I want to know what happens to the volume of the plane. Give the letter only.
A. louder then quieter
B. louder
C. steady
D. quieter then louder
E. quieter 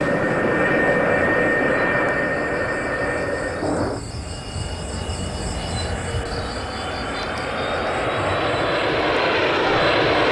D.